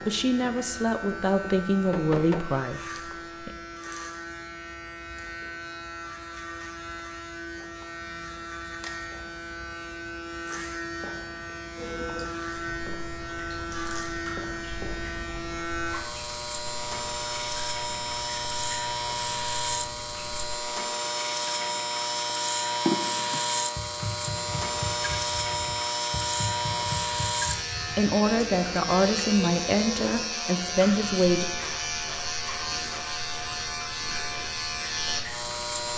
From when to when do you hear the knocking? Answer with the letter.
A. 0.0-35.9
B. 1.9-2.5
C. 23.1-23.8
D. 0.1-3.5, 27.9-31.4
B.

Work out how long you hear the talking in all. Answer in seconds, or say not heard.
7 s.